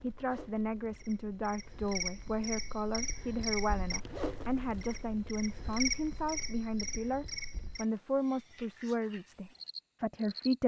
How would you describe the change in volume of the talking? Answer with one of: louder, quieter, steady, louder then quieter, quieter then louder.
steady.